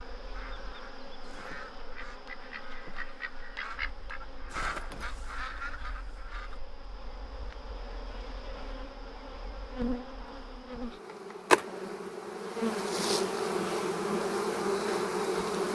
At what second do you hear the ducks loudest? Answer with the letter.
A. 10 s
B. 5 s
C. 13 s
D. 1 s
B.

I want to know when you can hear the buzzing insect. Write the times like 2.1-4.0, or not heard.
0.0-15.7.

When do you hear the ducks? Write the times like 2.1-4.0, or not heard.
0.0-6.6.